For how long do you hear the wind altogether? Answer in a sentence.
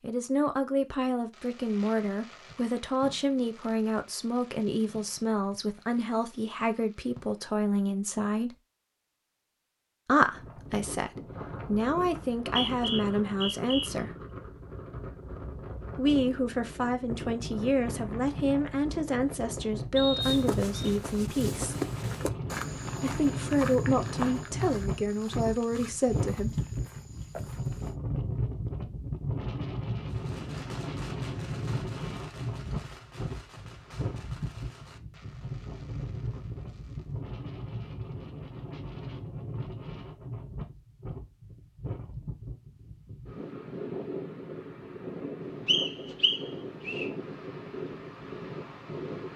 The wind can be heard for 39 seconds in total.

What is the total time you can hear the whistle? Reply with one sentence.
The whistle can be heard for 4 seconds in total.